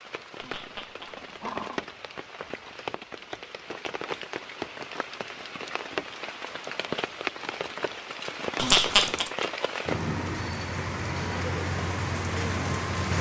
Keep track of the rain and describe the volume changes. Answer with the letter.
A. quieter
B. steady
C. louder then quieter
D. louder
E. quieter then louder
D.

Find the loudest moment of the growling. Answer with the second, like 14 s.
9 s.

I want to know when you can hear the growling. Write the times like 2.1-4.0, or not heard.
0.4-1.8, 8.6-9.3.